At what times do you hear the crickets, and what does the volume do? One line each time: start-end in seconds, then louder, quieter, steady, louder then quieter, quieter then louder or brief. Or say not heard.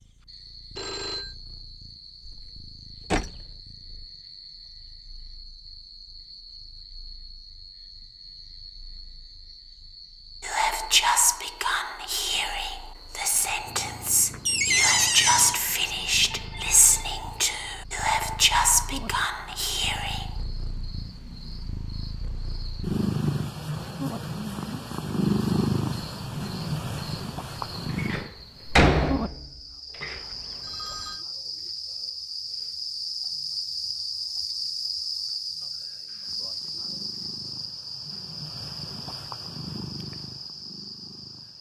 0.0-41.5 louder.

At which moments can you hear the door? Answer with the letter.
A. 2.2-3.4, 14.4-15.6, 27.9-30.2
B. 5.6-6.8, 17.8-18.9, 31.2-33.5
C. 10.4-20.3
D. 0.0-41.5
A.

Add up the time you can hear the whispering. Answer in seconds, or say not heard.
10 s.